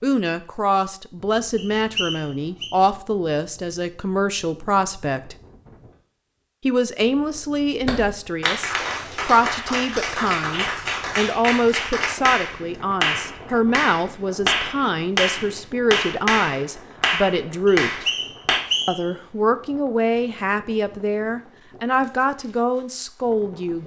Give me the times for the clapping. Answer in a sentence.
The clapping can be heard from 7.8 to 18.6 s.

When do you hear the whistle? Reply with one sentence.
The whistle can be heard from 1.6 to 2.7 s and from 17.6 to 19.1 s.